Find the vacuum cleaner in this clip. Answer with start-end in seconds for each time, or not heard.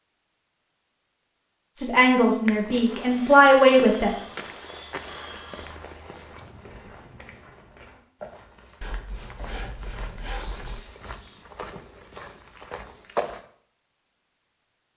not heard.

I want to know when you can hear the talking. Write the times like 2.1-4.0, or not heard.
1.8-4.2.